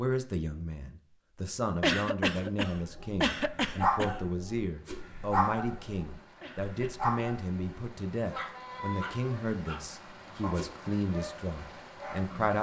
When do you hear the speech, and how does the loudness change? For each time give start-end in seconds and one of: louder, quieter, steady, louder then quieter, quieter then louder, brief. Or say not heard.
0.0-12.5 steady.